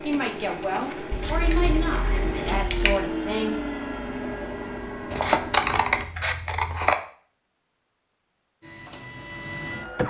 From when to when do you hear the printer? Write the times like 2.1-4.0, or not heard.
0.0-6.0, 8.6-10.0.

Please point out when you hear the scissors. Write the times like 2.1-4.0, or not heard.
1.1-3.0, 5.1-7.0.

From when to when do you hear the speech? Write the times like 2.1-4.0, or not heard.
0.0-3.6.